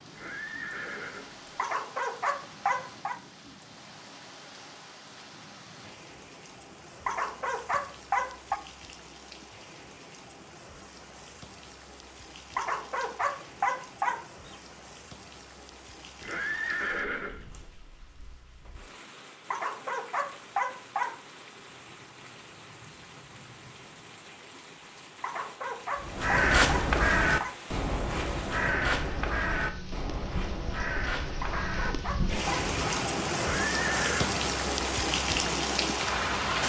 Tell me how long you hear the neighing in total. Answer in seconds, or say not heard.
4 s.